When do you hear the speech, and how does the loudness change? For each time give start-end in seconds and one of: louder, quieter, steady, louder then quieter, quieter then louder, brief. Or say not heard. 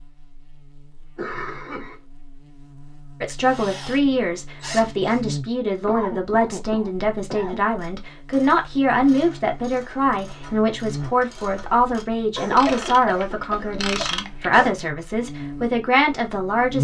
3.2-16.8 steady.